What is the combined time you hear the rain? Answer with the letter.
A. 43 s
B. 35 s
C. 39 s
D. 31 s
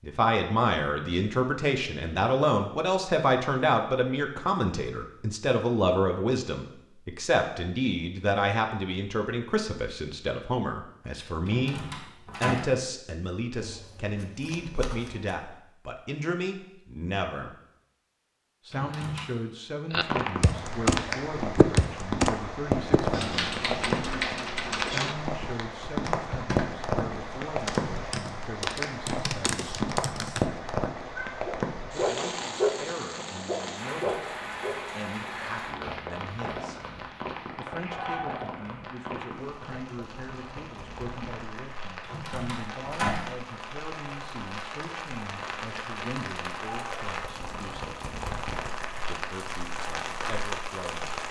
D.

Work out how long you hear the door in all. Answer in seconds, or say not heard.
3 s.